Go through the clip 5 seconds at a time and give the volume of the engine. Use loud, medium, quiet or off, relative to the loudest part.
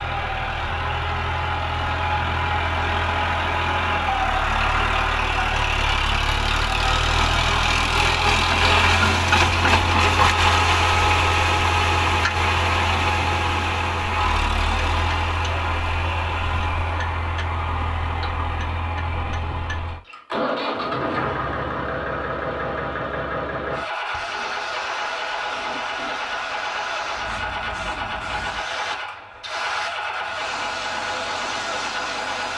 loud, loud, loud, medium, medium, medium, medium.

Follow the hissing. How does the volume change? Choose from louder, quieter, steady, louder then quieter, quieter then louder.
steady.